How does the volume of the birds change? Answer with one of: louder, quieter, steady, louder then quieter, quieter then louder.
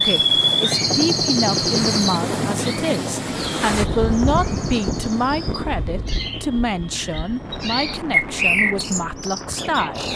quieter then louder.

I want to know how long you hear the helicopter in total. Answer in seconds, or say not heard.
10 s.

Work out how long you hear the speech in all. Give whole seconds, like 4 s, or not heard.
10 s.